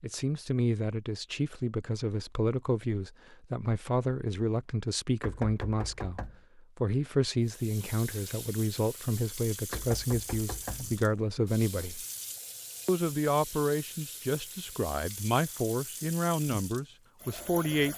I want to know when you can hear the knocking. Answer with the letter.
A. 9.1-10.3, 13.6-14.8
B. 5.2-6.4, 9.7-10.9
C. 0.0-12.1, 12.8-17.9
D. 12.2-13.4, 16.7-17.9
B.